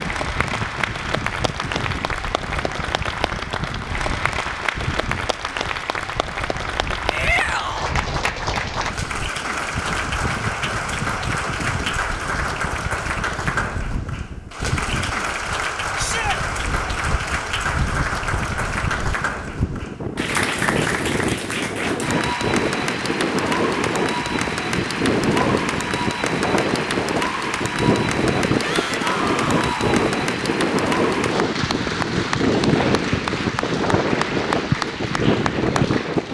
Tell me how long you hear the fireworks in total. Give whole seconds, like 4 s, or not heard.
not heard.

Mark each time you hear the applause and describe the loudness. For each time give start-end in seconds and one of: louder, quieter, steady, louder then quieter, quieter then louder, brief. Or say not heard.
0.0-36.2 steady.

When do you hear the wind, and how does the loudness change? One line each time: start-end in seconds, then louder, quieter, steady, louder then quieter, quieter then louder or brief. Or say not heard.
0.0-36.2 louder.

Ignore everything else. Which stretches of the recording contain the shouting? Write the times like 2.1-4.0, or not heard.
7.1-8.0, 15.9-16.4, 28.6-30.0.